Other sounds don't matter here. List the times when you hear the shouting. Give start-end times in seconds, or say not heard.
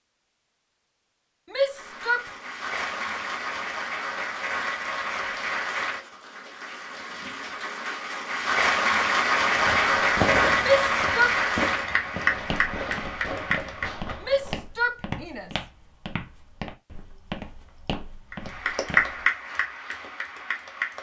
1.4-2.3, 10.6-11.4, 14.2-15.5.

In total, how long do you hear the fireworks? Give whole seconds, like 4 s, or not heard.
5 s.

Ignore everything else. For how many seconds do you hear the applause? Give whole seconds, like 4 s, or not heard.
15 s.